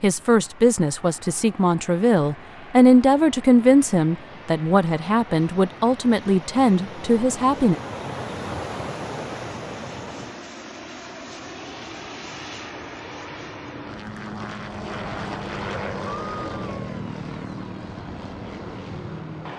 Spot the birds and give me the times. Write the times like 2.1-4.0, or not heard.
not heard.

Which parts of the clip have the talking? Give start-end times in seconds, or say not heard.
0.0-7.8.